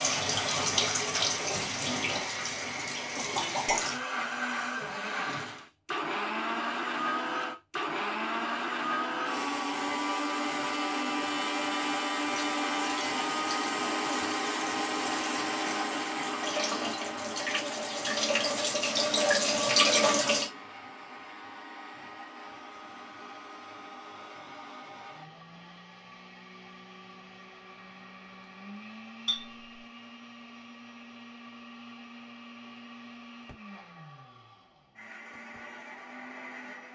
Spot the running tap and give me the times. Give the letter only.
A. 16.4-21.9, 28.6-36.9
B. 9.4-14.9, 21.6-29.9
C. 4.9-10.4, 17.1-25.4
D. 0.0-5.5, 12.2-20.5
D.